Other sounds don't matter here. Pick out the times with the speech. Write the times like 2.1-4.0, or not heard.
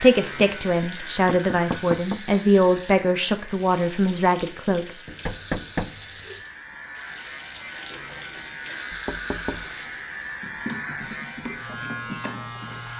0.0-4.8.